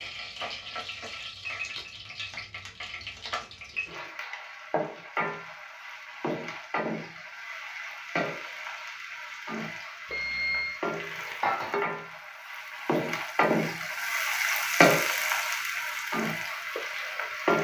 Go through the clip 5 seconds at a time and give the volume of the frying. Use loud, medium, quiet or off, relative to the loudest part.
medium, medium, loud, loud.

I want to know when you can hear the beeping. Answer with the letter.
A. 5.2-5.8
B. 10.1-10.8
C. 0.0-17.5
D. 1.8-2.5
B.